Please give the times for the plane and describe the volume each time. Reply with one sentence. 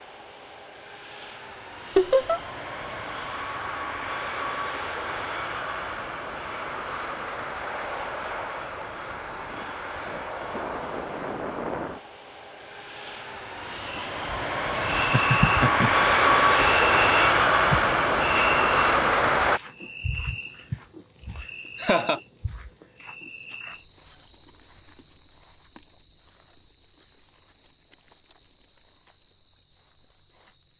You can hear the plane from 0.0 to 19.6 s, getting louder.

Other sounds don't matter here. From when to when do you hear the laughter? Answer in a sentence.
You can hear the laughter from 1.9 to 2.4 s, from 14.9 to 16.1 s and from 21.4 to 22.2 s.